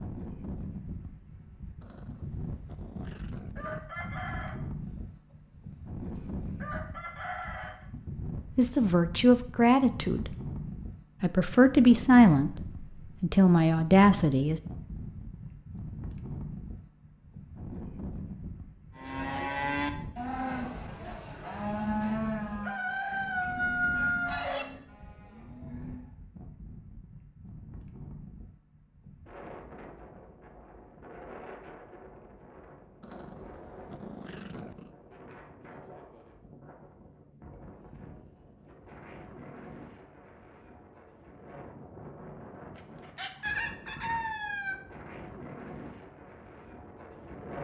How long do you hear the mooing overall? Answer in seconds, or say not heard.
7 s.